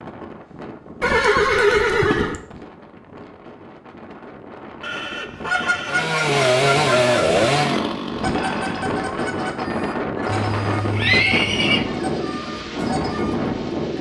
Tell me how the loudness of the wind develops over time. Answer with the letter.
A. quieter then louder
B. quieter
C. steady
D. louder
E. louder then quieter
D.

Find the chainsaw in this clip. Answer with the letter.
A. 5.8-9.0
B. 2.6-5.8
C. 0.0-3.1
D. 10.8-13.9
A.